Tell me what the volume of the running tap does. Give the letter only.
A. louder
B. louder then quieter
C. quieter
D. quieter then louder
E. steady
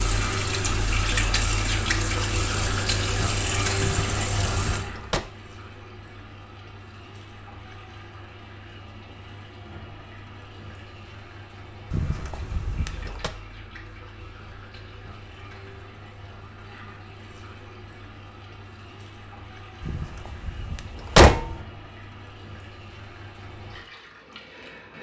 C.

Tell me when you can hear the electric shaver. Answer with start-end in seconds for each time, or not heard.
not heard.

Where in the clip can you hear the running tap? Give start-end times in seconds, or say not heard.
0.0-24.9.